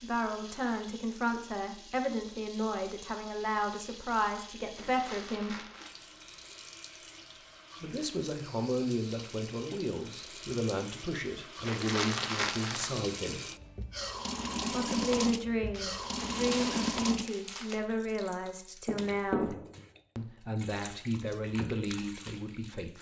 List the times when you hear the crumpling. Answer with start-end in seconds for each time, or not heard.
4.8-5.9, 11.7-12.9, 15.7-17.9.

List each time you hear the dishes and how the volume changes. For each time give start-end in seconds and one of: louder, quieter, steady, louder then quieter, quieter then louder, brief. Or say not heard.
not heard.